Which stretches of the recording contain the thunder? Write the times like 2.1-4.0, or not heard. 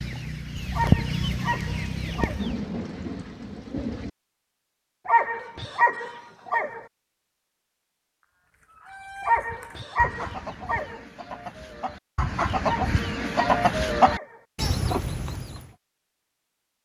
0.9-4.1.